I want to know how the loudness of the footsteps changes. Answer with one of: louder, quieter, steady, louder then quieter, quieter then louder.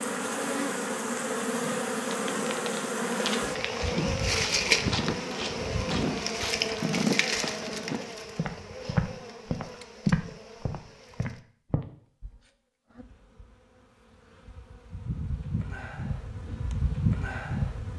louder.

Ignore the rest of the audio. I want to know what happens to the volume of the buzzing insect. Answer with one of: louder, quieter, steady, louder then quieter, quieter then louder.
quieter then louder.